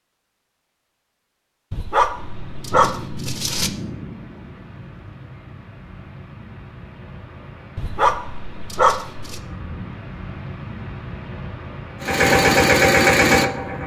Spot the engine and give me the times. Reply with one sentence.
The engine can be heard from 12.0 to 13.8 s.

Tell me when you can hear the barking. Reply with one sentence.
The barking can be heard from 1.7 to 3.7 s and from 7.8 to 9.4 s.